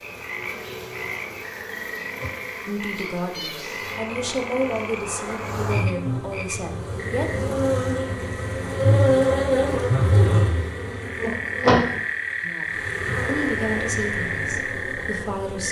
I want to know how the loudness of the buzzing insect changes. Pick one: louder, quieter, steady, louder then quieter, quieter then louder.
louder then quieter.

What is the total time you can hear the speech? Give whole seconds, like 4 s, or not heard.
8 s.